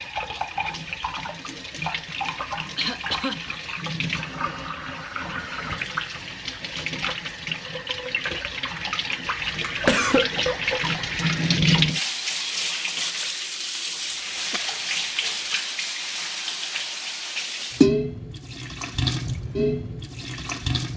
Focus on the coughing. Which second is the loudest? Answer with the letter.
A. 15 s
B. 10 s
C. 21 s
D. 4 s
B.